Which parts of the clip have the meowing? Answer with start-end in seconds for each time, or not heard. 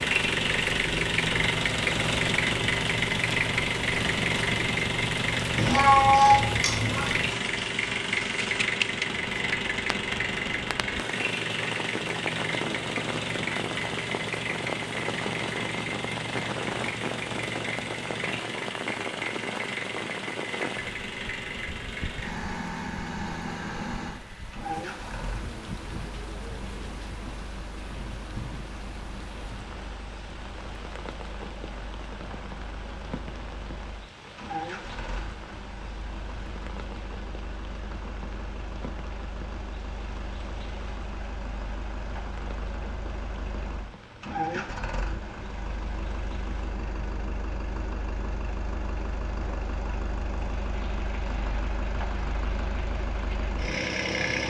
5.5-7.1.